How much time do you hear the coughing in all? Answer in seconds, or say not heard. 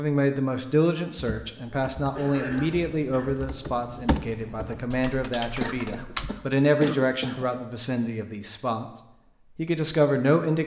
3 s.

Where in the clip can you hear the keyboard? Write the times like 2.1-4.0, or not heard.
1.1-6.3.